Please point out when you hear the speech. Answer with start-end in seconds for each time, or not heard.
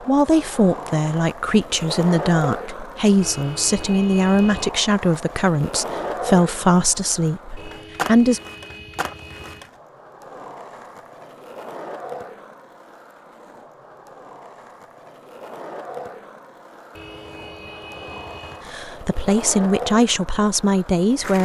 0.1-8.4, 18.7-21.4.